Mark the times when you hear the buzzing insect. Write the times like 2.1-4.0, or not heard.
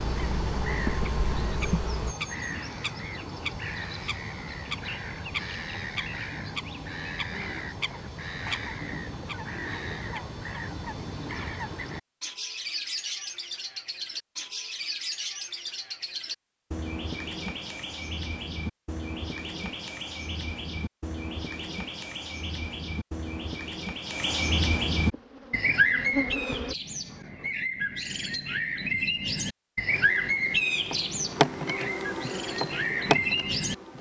0.0-2.1, 25.1-26.8, 29.9-33.9.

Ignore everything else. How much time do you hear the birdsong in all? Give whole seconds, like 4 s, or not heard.
34 s.